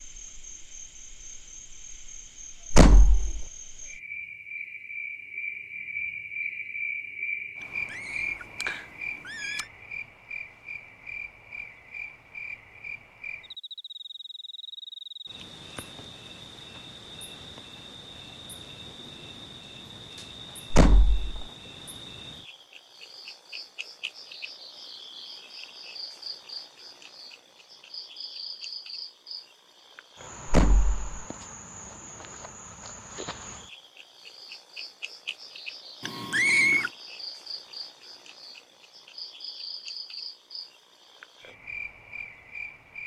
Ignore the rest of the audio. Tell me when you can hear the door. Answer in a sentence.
The door can be heard from 2.7 to 3.5 s, from 20.7 to 21.4 s and from 30.4 to 31.1 s.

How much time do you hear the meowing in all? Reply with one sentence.
The meowing can be heard for 3 seconds in total.